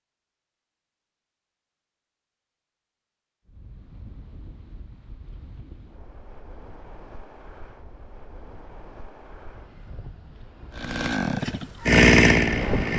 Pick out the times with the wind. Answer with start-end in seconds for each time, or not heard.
3.5-12.9.